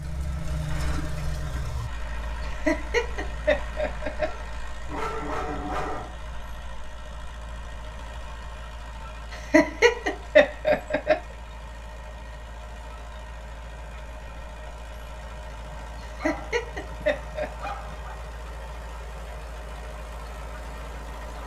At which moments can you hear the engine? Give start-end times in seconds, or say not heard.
0.0-21.4.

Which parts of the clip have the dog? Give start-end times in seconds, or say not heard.
4.2-6.2, 15.6-18.1.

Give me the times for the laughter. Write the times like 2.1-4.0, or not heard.
2.6-4.3, 9.3-11.2, 16.2-17.7.